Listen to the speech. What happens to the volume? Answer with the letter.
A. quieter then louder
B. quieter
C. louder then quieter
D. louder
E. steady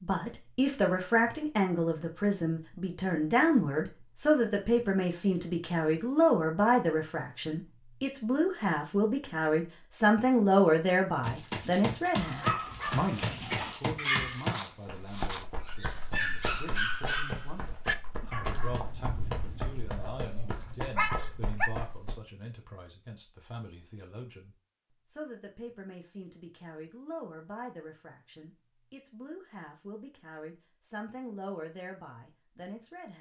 B.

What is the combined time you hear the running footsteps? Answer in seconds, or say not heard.
11 s.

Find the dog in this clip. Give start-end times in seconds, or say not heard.
12.2-21.7.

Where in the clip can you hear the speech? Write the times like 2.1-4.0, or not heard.
0.0-33.1.